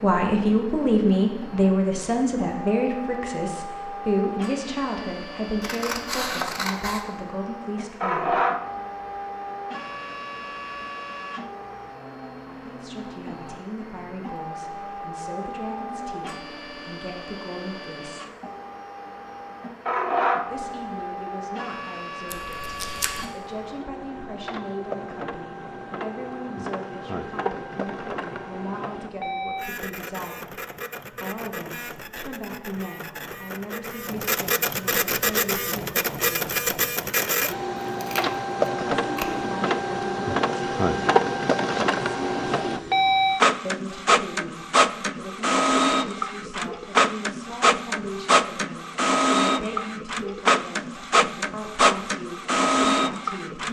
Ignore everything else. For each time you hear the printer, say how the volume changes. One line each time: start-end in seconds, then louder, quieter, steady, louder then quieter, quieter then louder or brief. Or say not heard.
0.0-53.6 louder.